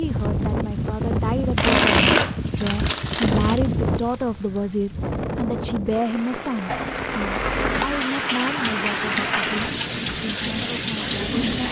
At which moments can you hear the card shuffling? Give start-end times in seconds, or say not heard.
1.6-3.5, 6.7-8.1.